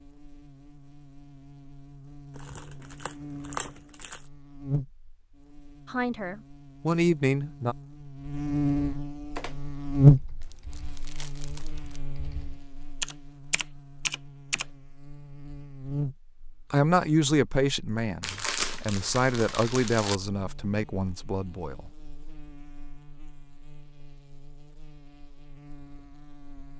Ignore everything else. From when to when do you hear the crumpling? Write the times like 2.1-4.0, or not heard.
2.4-4.2, 10.4-12.0, 18.2-20.2.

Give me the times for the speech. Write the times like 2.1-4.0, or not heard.
5.8-7.8, 16.7-21.9.